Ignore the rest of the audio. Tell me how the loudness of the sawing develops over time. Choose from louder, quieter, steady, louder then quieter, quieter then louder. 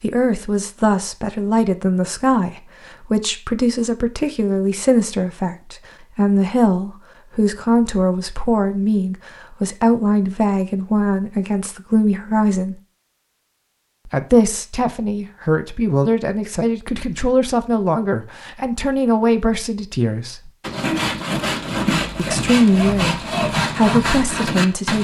steady.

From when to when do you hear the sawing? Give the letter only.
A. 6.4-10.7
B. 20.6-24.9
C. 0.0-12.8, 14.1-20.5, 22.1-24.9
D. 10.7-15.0
B.